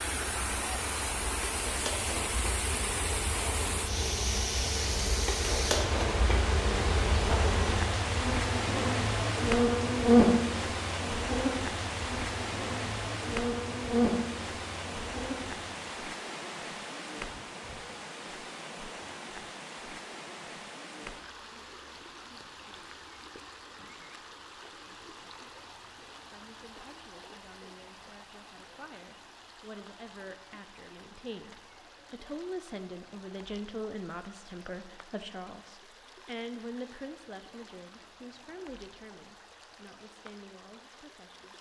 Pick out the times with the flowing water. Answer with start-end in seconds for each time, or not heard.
0.0-41.5.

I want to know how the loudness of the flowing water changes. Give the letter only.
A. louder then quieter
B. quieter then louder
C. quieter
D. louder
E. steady
C.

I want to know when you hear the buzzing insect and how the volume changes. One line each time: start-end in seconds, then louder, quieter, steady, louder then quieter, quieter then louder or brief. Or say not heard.
0.0-15.7 louder then quieter.